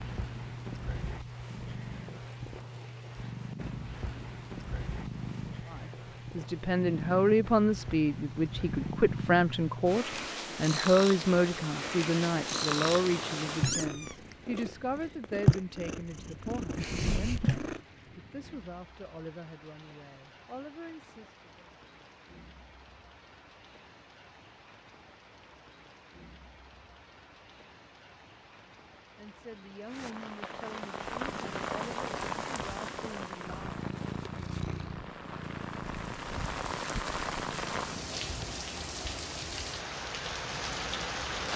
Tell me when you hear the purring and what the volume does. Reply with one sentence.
You can hear the purring from 0.0 to 17.8 s, getting louder; and from 31.1 to 39.0 s, getting louder then quieter.